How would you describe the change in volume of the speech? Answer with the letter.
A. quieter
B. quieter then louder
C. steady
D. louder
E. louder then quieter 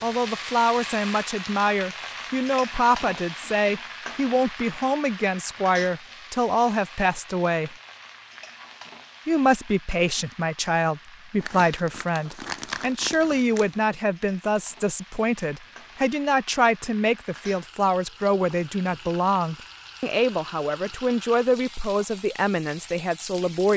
C.